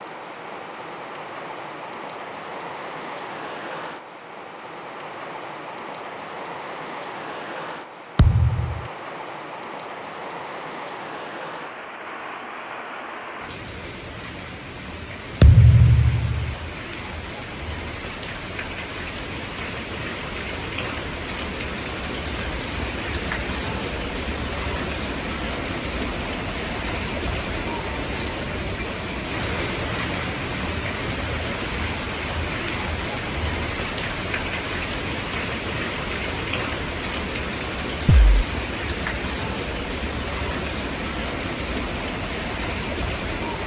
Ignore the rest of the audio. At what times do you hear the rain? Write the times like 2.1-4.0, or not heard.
0.0-43.6.